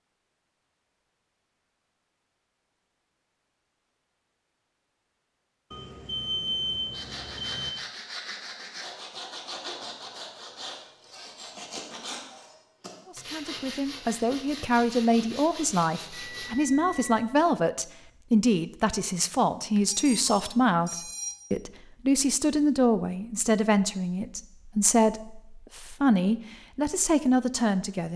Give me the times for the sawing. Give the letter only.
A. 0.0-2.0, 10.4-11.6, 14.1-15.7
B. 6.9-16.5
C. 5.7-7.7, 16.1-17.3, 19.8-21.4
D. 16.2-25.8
B.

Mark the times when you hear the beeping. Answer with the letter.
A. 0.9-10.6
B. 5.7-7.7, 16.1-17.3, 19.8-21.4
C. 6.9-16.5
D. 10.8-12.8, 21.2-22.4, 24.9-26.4
B.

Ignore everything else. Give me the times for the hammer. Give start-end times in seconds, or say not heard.
not heard.